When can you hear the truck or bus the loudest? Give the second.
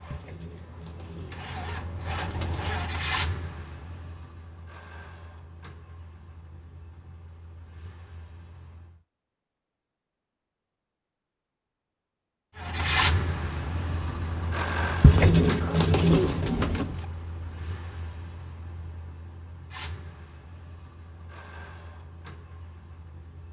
13 s.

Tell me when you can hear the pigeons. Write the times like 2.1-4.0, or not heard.
0.1-2.9, 15.0-17.1.